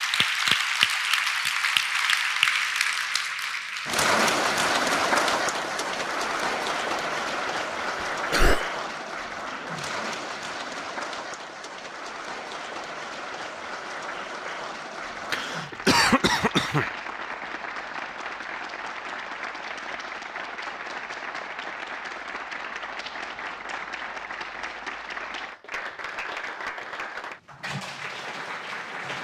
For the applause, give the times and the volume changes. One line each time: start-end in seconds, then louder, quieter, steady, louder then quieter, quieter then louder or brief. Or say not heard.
0.0-29.2 quieter.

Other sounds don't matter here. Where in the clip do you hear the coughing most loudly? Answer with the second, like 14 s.
16 s.